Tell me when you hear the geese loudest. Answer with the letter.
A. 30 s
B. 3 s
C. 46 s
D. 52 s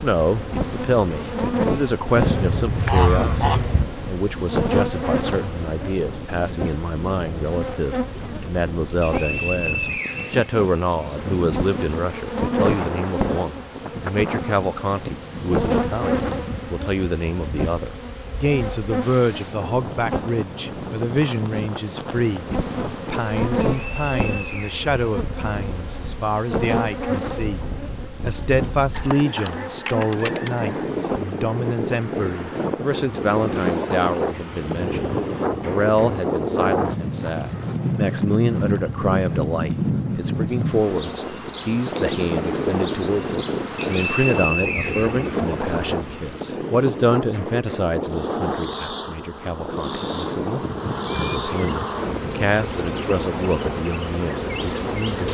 B.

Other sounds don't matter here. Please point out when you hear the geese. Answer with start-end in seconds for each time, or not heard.
2.1-3.9, 28.9-30.9, 50.6-52.4.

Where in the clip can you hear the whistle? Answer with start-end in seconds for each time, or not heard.
9.0-10.5, 23.6-24.9, 43.8-45.3.